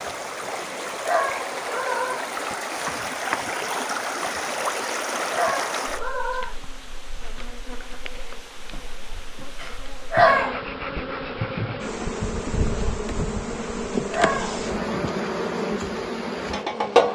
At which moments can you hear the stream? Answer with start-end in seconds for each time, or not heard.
0.0-10.3.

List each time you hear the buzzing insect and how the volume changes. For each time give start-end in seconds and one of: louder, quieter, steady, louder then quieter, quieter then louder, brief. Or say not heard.
0.0-17.0 louder.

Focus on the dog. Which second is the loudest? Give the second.
10 s.